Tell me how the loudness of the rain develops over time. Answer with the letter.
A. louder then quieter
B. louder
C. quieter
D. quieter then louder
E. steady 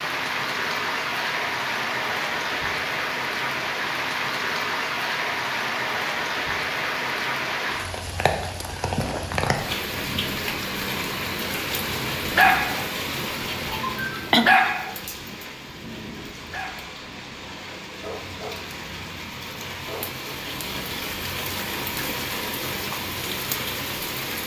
D.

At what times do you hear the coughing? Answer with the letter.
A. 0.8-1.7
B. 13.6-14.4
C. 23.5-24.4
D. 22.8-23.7
B.